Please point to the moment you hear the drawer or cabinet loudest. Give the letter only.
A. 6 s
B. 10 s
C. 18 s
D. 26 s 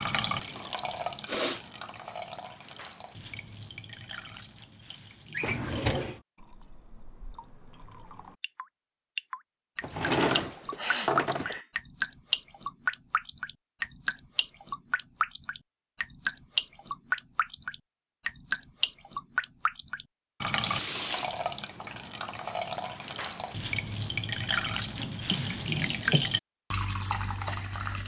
B.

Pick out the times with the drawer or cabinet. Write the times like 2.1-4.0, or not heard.
5.3-6.2, 9.8-11.6, 24.9-26.3.